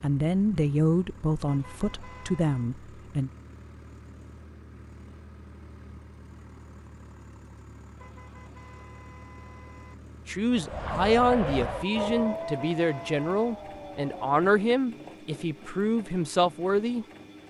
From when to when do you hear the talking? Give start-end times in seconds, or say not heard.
0.0-3.3, 10.2-17.1.